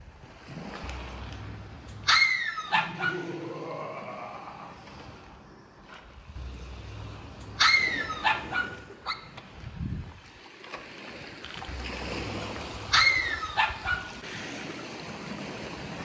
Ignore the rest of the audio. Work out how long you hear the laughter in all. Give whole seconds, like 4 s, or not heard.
2 s.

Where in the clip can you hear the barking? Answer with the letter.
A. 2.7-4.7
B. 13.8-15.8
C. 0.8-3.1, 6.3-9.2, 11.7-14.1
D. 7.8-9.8
C.